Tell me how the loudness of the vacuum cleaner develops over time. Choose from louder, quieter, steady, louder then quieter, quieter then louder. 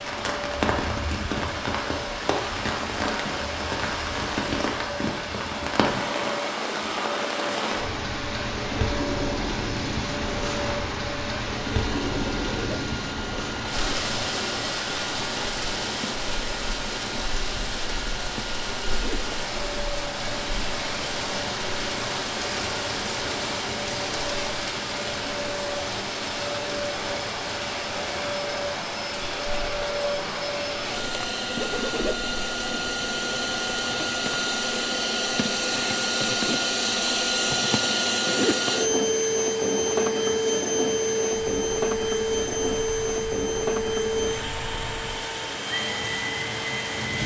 louder.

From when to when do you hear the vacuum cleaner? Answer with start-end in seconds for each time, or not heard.
0.0-47.2.